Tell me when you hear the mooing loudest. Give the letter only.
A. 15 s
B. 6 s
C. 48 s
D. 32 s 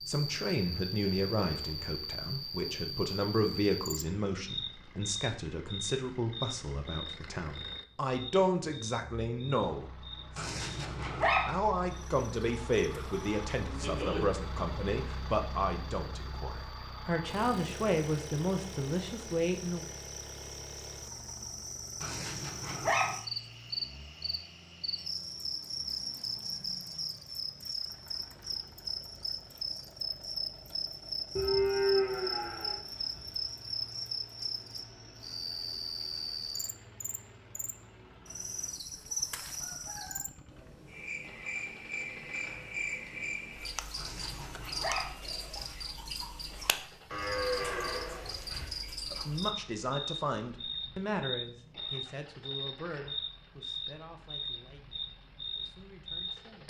D.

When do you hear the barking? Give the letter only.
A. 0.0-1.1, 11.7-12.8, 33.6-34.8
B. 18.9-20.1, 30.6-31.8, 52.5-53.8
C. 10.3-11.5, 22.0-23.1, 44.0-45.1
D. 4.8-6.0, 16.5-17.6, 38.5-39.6
C.